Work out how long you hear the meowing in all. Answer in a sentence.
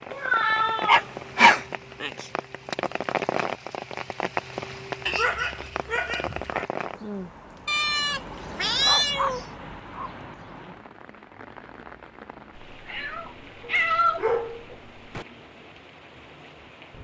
The meowing can be heard for 6 seconds in total.